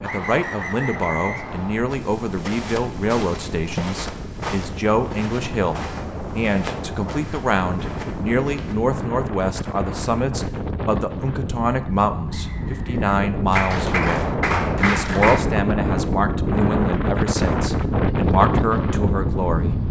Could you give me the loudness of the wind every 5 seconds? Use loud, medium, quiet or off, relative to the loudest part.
quiet, medium, medium, loud.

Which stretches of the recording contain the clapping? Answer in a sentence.
You can hear the clapping from 13.5 to 15.4 s.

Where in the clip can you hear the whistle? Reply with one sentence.
You can hear the whistle from 0.0 to 1.9 s and from 12.2 to 13.2 s.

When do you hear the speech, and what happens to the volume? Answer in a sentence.
The speech can be heard from 0.0 to 19.8 s, at a steady volume.